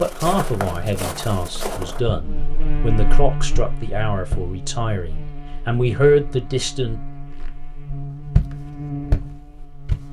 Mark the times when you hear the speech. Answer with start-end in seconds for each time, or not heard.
0.0-7.0.